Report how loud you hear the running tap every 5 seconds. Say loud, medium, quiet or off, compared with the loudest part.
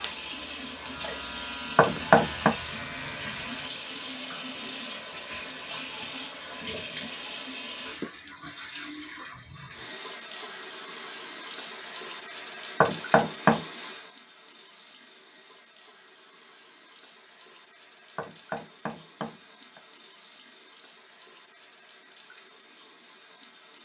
loud, loud, loud, quiet, quiet.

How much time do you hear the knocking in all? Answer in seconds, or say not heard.
3 s.